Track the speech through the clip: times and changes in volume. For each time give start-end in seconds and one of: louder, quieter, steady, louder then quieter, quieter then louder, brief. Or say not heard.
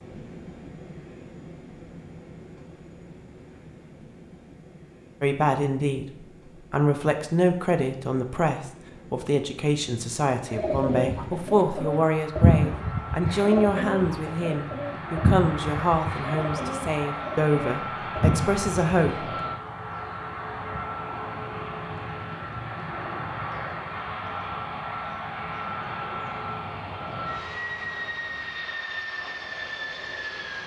5.2-6.0 brief
6.7-19.3 steady.